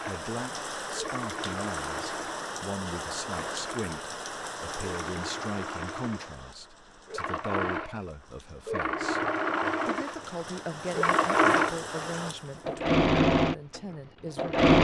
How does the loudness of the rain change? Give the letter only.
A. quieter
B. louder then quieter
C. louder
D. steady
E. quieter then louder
E.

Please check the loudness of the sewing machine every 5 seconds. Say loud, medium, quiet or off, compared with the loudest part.
quiet, medium, loud.